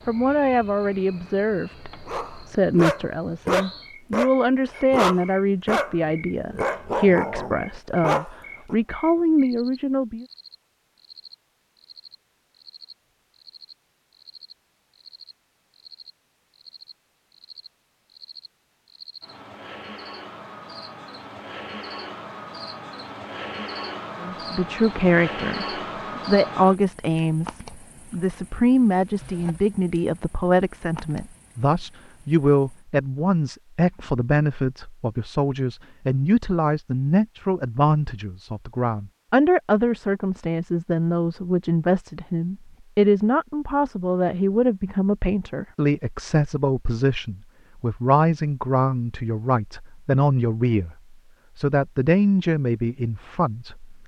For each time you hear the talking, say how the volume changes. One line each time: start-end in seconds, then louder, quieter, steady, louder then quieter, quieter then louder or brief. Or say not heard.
0.1-10.2 steady
24.2-51.0 steady
51.5-54.0 brief.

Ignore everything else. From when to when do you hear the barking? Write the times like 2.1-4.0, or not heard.
2.0-8.8.